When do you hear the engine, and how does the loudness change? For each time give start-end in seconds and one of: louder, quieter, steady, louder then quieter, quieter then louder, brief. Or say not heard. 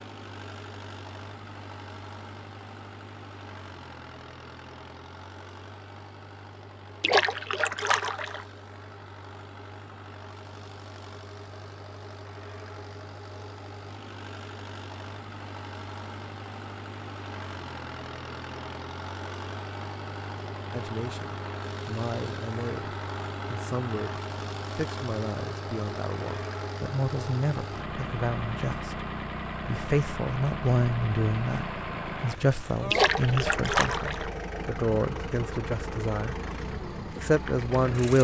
0.0-38.1 louder.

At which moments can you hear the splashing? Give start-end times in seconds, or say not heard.
7.0-8.4, 32.9-34.3.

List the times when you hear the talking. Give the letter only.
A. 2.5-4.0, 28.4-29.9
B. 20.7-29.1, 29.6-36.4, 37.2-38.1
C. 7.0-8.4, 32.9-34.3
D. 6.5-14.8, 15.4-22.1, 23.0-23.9
B.